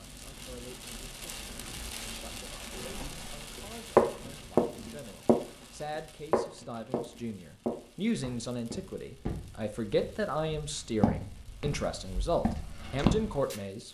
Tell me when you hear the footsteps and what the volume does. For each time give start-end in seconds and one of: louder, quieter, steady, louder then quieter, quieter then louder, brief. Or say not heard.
2.7-5.4 brief
6.3-13.6 quieter then louder.